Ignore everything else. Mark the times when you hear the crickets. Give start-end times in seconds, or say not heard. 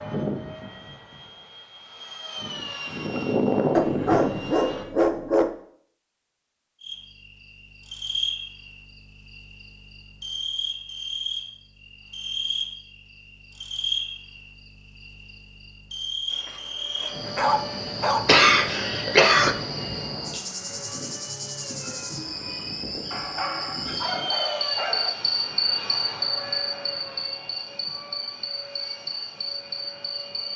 6.8-30.5.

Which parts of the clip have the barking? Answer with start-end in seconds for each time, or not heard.
3.7-5.5, 16.4-18.2, 23.1-25.1.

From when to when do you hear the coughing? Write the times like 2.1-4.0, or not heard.
18.2-19.6.